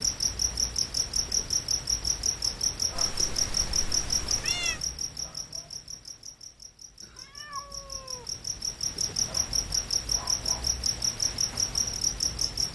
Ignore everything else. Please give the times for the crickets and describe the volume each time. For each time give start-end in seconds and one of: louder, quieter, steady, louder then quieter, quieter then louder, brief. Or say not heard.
0.0-12.7 quieter then louder.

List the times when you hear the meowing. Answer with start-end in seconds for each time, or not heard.
3.0-4.9, 7.0-8.3.